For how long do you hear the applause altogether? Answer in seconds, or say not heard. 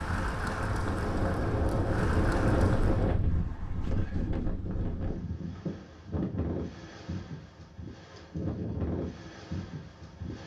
3 s.